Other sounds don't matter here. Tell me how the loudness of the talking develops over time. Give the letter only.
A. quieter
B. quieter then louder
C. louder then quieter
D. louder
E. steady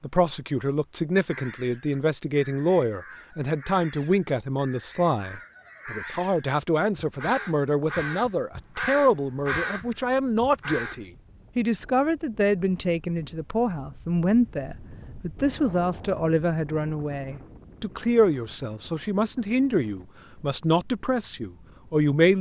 E.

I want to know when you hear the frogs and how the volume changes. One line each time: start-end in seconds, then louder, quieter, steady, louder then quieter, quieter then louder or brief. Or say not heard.
not heard.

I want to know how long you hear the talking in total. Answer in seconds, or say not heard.
22 s.